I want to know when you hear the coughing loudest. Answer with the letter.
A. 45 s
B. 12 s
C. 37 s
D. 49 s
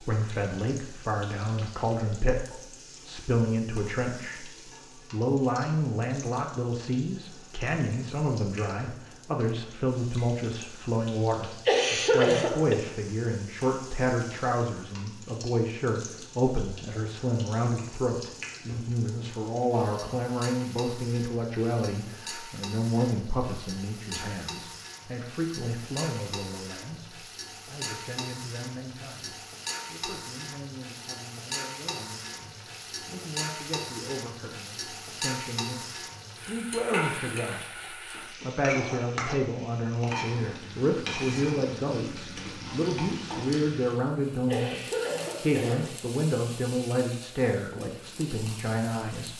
B.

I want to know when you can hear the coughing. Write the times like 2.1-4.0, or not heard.
11.4-12.8, 44.5-46.0.